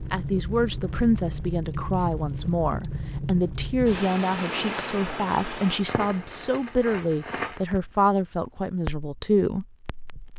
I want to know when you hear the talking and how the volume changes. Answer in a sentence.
You can hear the talking from 0.1 to 9.7 s, at a steady volume.